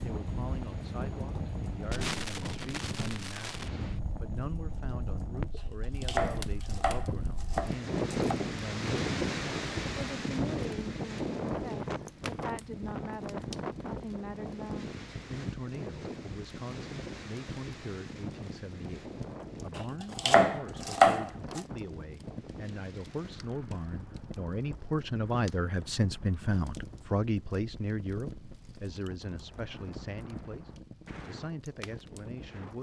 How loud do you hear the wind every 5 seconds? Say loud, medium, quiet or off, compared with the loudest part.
medium, loud, loud, medium, quiet, quiet, quiet.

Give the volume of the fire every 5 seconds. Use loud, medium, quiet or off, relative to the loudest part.
loud, loud, medium, medium, medium, medium, medium.